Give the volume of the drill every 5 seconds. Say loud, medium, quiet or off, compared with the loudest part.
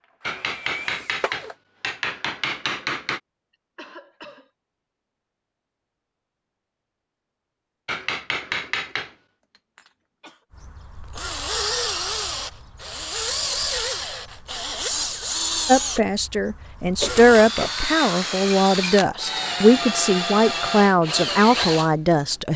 quiet, off, loud, loud, loud.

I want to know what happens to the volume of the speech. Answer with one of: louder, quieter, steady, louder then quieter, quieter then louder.
steady.